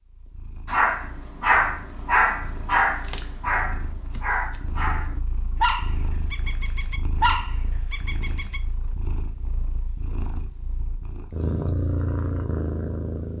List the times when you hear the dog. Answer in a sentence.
You can hear the dog from 0.7 to 8.6 s.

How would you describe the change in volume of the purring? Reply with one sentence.
The loudness of the purring goes up.